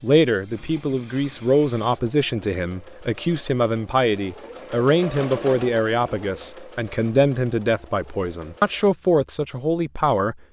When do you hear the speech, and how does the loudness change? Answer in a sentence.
The speech can be heard from 0.0 to 10.3 s, at a steady volume.